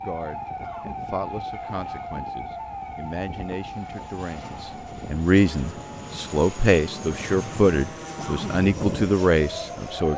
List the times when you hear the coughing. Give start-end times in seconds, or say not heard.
0.6-1.0, 8.2-8.6.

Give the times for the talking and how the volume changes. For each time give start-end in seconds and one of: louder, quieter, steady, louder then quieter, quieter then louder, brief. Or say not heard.
0.0-10.1 louder.